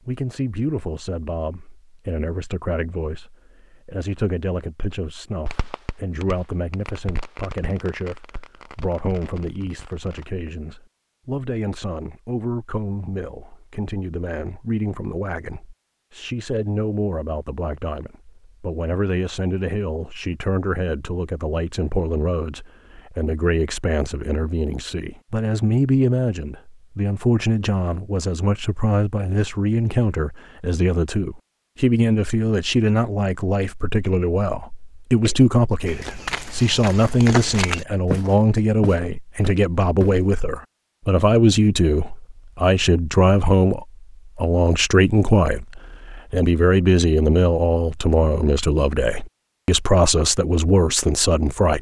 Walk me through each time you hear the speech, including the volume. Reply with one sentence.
You can hear the speech from 0.1 to 51.7 s, getting louder.